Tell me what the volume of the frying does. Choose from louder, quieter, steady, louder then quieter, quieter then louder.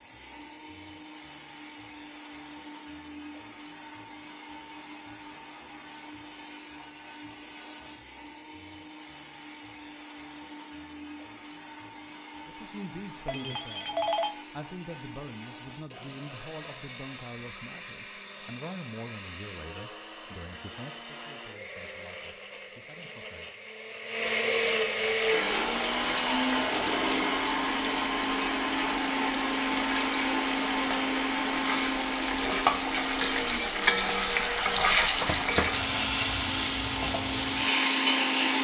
louder.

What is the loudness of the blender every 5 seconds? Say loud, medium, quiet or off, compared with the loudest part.
quiet, quiet, quiet, quiet, medium, loud, loud, medium.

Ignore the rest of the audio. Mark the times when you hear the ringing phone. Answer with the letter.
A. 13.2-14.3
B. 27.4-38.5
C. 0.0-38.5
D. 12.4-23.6
A.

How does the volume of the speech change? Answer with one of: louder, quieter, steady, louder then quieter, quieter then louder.
quieter.